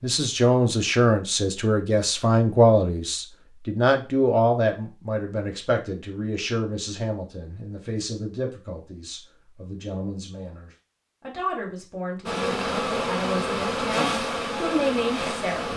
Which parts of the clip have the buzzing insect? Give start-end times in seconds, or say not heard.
12.2-15.7.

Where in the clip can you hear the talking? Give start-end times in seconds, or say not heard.
0.0-15.7.